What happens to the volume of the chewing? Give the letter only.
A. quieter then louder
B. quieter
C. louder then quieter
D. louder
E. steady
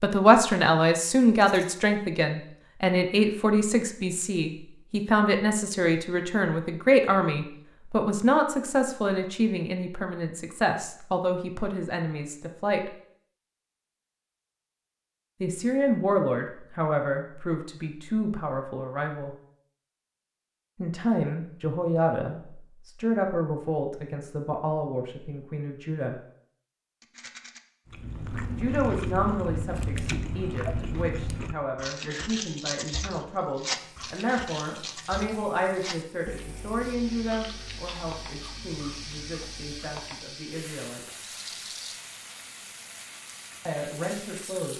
B.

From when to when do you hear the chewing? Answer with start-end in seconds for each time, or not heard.
27.9-40.2.